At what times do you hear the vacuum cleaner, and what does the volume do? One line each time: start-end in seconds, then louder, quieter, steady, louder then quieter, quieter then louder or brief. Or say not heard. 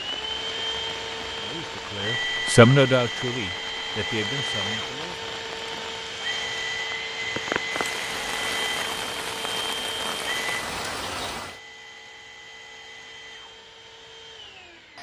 0.0-14.9 quieter.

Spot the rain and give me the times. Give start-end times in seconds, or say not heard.
0.0-11.6.